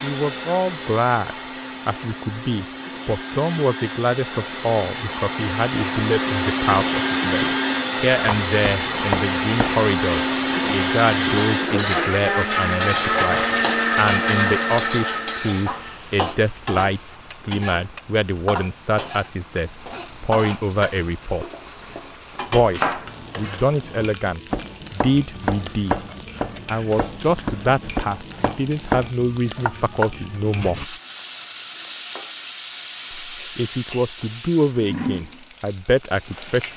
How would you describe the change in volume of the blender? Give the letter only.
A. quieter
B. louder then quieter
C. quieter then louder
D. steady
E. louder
E.